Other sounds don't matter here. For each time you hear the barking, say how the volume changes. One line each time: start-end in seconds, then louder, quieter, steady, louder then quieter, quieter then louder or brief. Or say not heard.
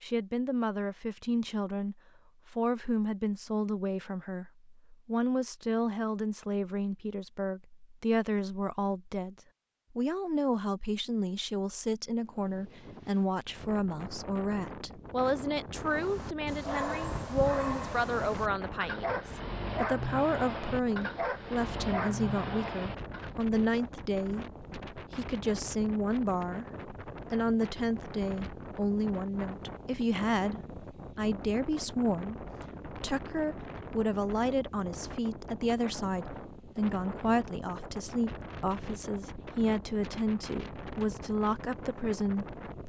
15.8-23.3 steady.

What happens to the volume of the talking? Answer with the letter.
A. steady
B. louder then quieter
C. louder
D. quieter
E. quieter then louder
A.